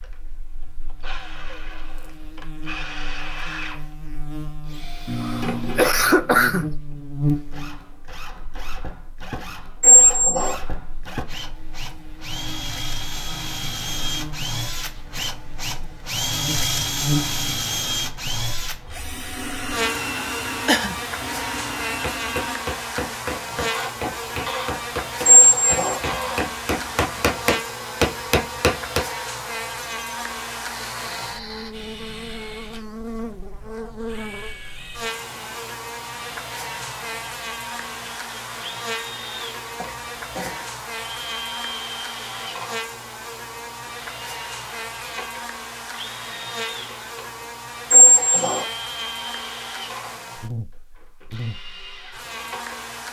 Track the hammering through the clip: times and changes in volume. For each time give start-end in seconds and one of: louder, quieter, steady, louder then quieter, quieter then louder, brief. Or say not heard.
22.0-29.1 louder.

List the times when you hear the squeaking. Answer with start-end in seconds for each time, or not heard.
9.8-10.6, 25.2-26.0, 47.9-48.6.